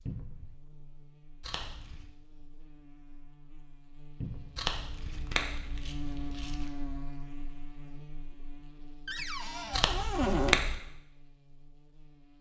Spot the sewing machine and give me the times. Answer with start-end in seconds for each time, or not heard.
not heard.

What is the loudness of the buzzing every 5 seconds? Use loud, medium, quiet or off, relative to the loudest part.
quiet, loud, quiet.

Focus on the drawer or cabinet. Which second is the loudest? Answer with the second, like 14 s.
10 s.